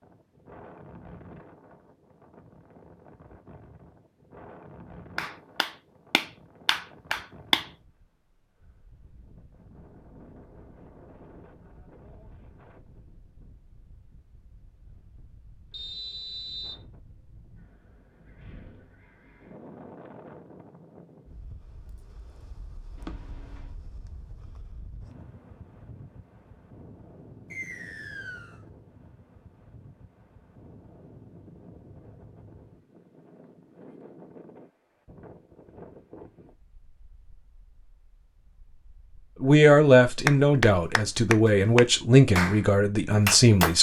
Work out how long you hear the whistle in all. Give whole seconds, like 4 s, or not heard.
2 s.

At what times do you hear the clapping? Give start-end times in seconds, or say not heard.
5.2-7.7, 40.2-42.6, 43.2-43.7.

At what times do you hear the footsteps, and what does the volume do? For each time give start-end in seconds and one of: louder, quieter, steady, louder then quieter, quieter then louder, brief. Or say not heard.
not heard.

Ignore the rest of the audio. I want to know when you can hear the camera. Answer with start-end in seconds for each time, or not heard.
22.9-23.8.